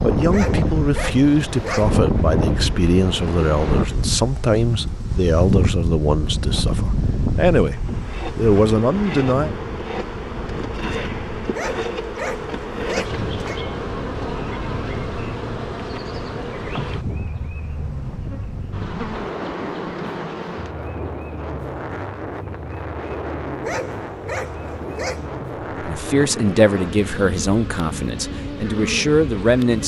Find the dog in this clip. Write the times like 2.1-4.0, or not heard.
0.3-1.9, 11.5-13.6, 23.6-25.4.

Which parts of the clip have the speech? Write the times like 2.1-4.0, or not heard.
0.0-9.5, 25.8-29.8.